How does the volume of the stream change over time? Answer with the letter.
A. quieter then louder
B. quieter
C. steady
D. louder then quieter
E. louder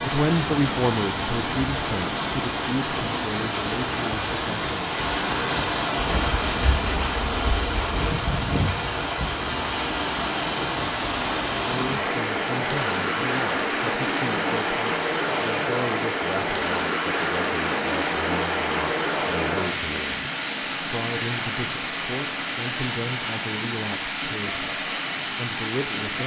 C.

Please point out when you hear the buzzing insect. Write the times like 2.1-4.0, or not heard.
6.2-8.2.